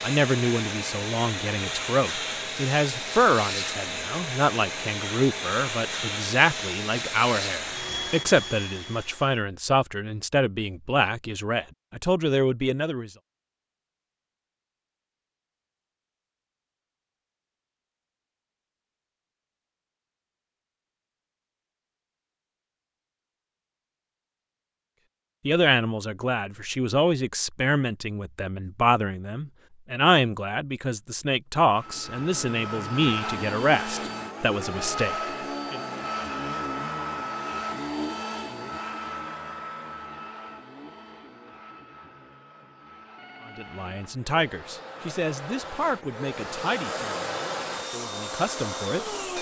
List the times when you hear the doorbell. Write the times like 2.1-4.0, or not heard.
43.1-44.0.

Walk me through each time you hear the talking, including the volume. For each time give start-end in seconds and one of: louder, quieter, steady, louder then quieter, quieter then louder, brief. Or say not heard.
0.0-13.1 steady
25.4-35.8 steady
43.5-49.1 quieter then louder.